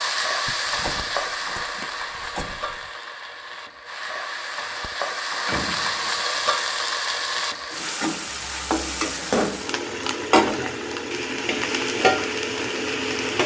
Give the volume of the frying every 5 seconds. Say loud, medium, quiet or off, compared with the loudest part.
medium, loud, loud.